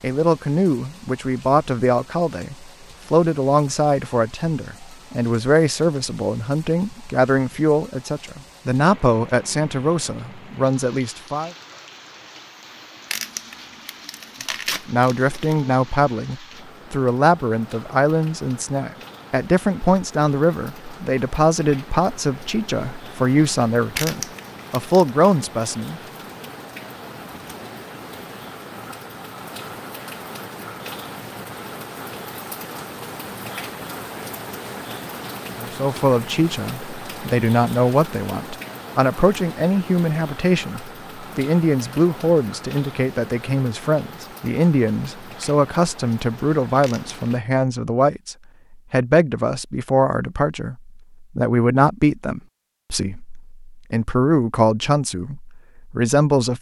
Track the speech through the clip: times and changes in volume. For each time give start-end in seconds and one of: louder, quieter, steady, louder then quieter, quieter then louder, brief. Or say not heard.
0.0-11.5 steady
14.8-26.0 steady
35.5-56.5 steady.